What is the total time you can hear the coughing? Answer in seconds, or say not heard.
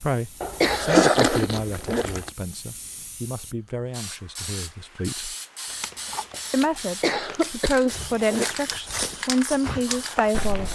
3 s.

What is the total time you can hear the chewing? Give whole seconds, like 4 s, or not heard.
4 s.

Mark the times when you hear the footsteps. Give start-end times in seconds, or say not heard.
7.8-10.7.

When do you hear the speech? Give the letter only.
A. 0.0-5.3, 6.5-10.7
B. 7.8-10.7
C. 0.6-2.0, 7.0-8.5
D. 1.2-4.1
A.